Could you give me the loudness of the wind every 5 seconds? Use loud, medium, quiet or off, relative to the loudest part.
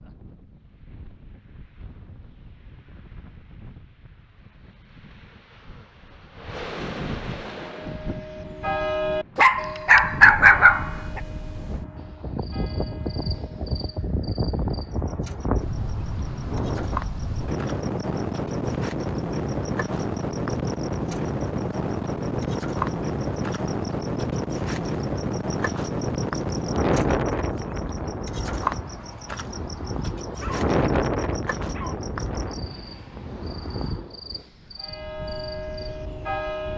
quiet, medium, medium, loud, loud, loud, loud, quiet.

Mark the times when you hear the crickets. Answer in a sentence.
The crickets can be heard from 11.9 to 36.7 s.